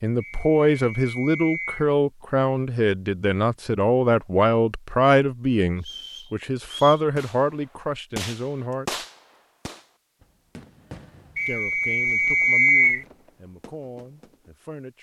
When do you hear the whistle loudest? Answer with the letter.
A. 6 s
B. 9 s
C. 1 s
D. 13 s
D.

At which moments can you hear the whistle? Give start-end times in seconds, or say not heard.
0.2-1.9, 5.8-7.0, 11.3-13.1.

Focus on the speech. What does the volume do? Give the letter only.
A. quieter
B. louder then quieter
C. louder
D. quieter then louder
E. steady
A.